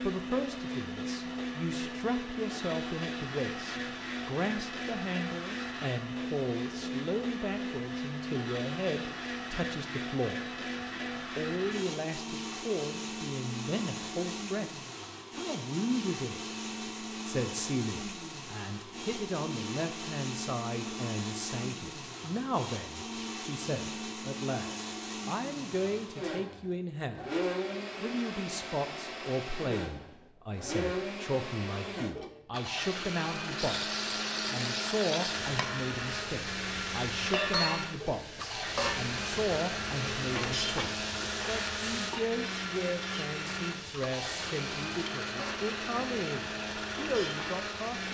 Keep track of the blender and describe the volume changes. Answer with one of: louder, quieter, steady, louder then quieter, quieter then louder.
steady.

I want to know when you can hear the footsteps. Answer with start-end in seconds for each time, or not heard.
not heard.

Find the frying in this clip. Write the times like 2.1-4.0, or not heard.
33.5-48.0.